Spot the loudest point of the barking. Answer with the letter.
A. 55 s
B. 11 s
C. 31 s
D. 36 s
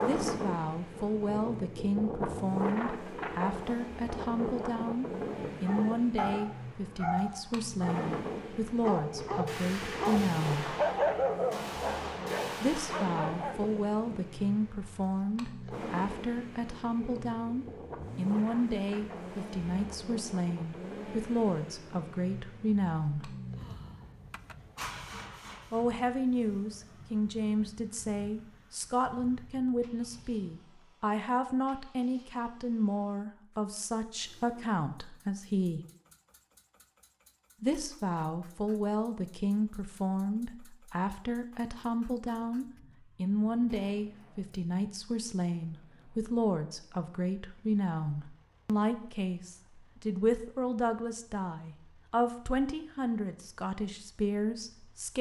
B.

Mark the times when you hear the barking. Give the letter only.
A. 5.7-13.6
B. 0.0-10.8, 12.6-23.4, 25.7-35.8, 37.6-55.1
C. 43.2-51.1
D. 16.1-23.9
A.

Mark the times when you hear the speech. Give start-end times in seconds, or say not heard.
0.0-10.8, 12.6-23.4, 25.7-35.8, 37.6-55.1.